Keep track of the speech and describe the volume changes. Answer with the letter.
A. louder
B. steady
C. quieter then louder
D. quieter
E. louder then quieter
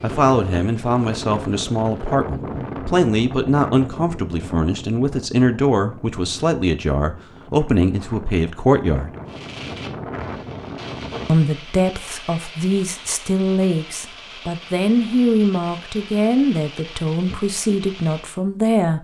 B.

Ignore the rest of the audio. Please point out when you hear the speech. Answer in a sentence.
The speech can be heard from 0.0 to 9.1 s and from 11.2 to 19.0 s.